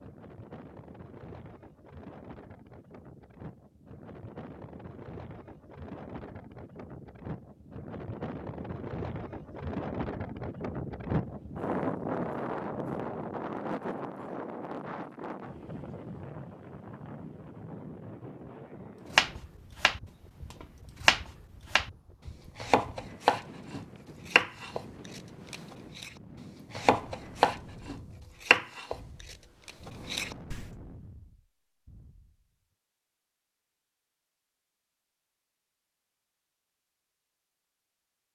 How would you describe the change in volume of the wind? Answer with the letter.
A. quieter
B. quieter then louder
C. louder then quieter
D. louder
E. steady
C.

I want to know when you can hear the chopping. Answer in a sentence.
The chopping can be heard from 19.1 to 21.9 s, from 22.6 to 26.1 s and from 26.7 to 30.6 s.